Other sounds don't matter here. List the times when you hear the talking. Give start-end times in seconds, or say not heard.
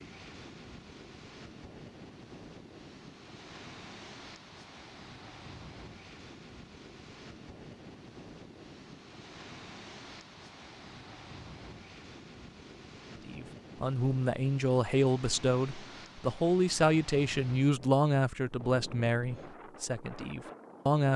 13.2-21.1.